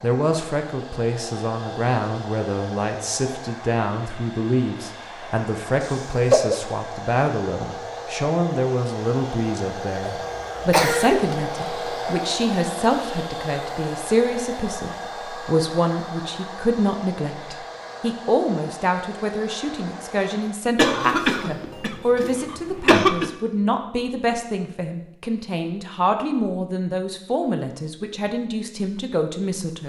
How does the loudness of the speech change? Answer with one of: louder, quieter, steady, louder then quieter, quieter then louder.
steady.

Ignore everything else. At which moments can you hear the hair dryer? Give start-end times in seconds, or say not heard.
0.0-20.6.